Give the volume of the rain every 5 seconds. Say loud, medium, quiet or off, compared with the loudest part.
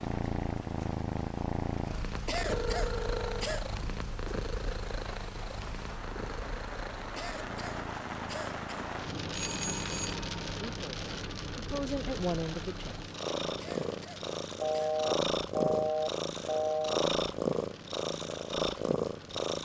medium, loud, loud, medium.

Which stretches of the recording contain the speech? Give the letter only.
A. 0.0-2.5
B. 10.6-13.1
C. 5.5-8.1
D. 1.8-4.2
B.